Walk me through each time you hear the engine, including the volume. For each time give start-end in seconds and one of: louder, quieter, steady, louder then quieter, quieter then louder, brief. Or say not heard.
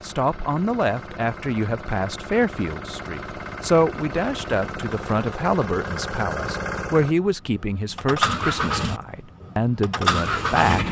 0.0-10.8 louder.